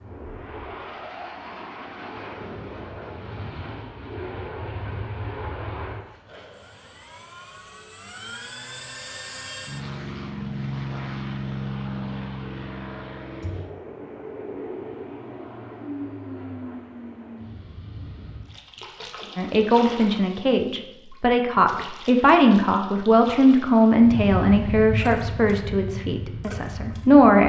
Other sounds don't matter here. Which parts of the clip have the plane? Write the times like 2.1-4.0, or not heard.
0.0-18.6, 23.9-27.4.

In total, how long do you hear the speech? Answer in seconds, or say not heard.
8 s.